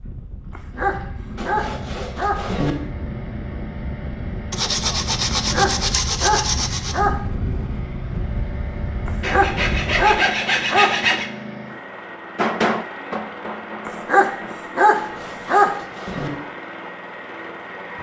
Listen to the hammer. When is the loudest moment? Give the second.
13 s.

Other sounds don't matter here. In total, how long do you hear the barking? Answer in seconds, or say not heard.
8 s.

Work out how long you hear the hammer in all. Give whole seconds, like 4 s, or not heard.
2 s.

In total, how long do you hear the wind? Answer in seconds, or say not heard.
10 s.